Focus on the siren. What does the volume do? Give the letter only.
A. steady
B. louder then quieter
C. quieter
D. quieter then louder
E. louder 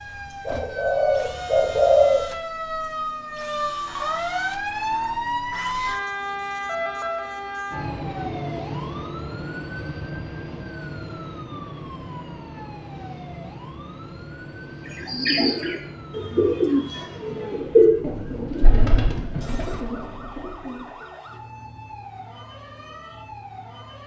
C.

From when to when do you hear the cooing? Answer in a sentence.
The cooing can be heard from 0.5 to 2.2 s and from 15.1 to 20.9 s.